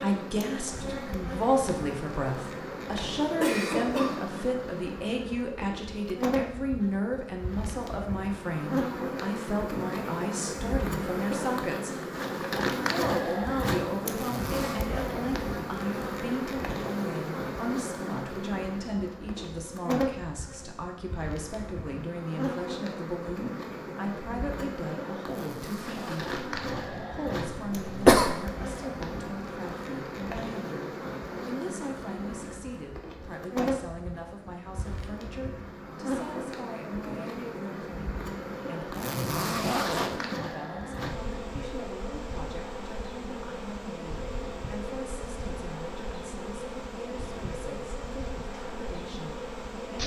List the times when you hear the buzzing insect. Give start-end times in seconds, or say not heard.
0.0-50.0.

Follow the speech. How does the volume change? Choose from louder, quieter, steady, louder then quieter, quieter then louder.
quieter.